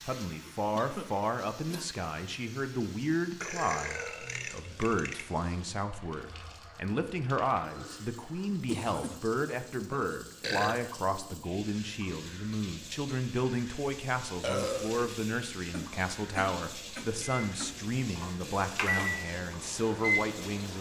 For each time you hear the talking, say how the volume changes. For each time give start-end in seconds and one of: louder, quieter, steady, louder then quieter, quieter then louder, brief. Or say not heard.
0.1-20.7 steady.